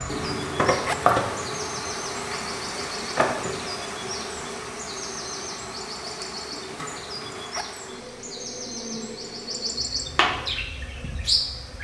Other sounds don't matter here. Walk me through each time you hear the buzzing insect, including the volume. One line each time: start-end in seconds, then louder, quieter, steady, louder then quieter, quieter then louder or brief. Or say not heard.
0.0-11.7 quieter.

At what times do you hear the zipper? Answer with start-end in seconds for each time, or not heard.
0.7-1.1, 7.3-7.8.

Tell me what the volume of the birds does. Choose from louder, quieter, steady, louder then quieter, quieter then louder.
louder.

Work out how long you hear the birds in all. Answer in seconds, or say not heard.
12 s.